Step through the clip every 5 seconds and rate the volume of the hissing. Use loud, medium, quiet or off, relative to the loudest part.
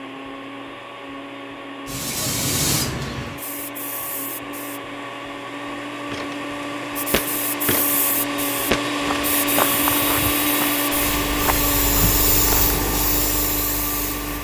loud, medium, loud.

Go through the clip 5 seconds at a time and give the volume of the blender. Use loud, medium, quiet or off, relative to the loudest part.
medium, loud, loud.